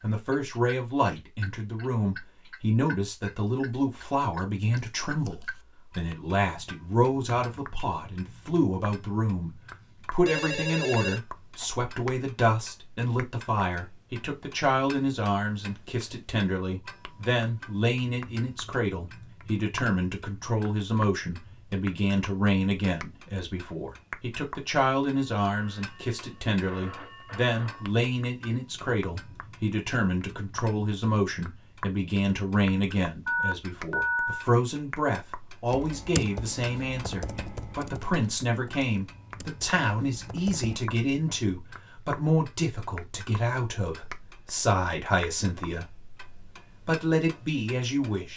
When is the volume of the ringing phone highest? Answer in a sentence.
The volume of the ringing phone peaks at 34 seconds.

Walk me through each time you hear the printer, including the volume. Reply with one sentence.
The printer can't be heard in this clip.